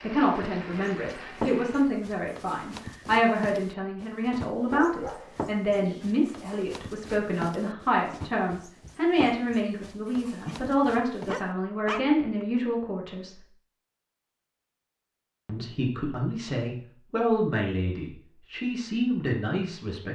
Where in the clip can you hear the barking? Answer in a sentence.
The barking can be heard from 4.7 to 6.2 s and from 10.4 to 12.4 s.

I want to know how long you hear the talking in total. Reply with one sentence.
The talking can be heard for 18 seconds in total.